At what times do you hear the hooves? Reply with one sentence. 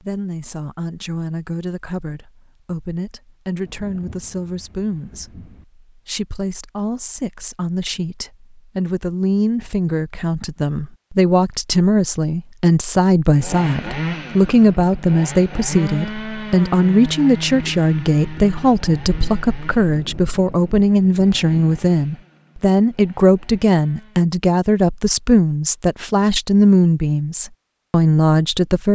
You can't hear the hooves here.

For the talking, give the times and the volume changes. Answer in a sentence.
You can hear the talking from 0.0 to 28.8 s, getting louder.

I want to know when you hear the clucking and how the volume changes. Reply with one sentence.
The clucking can't be heard in this clip.